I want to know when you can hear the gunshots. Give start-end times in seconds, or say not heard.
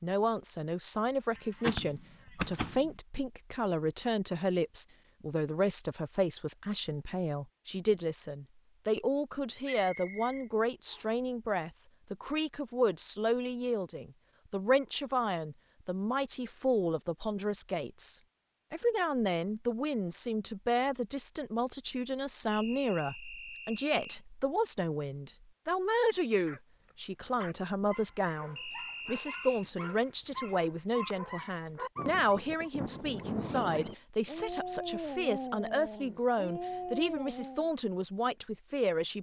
1.4-3.0.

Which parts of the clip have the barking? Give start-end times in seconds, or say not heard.
26.4-37.7.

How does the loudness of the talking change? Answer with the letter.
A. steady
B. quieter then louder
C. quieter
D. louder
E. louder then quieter
A.